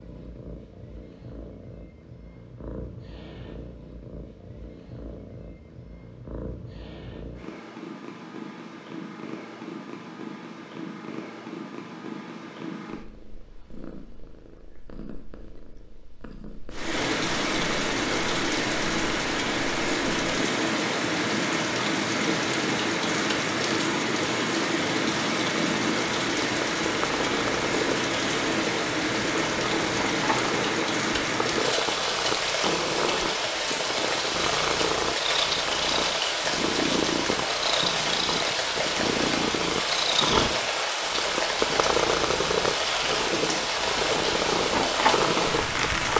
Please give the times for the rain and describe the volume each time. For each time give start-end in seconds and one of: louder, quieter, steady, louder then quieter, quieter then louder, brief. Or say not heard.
16.7-46.1 steady.